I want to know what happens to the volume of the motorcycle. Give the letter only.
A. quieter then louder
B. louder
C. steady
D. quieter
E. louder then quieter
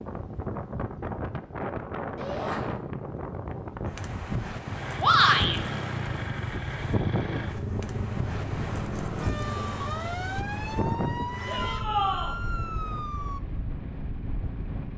D.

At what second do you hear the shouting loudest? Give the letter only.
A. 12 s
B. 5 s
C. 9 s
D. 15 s
B.